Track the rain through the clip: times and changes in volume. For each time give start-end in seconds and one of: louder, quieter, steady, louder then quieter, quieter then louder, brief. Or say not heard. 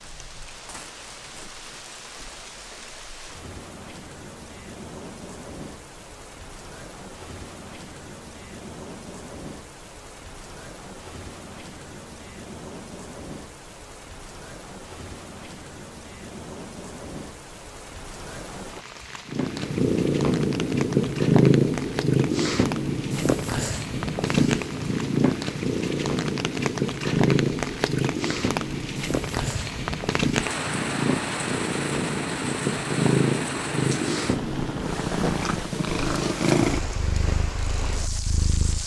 0.0-38.8 louder.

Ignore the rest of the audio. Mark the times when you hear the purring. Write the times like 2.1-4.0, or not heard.
19.3-38.8.